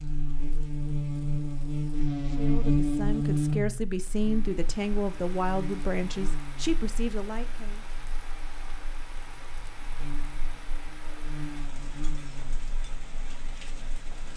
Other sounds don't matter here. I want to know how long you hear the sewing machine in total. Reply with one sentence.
The sewing machine can't be heard in this clip.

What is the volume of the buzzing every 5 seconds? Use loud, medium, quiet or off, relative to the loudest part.
loud, quiet, quiet.